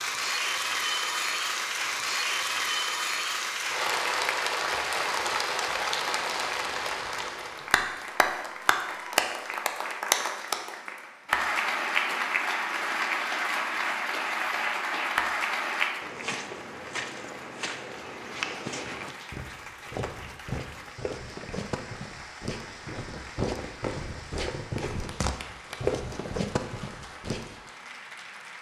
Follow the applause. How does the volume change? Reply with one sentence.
The loudness of the applause goes down.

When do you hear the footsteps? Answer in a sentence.
The footsteps can be heard from 16.0 to 27.6 s.